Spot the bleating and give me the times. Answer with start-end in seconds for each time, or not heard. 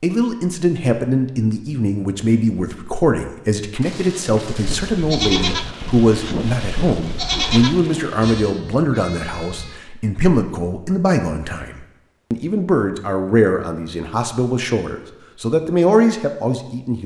4.6-9.8.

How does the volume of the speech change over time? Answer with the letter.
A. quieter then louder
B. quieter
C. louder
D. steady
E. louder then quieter
D.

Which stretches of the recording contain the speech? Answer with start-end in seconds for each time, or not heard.
0.0-17.0.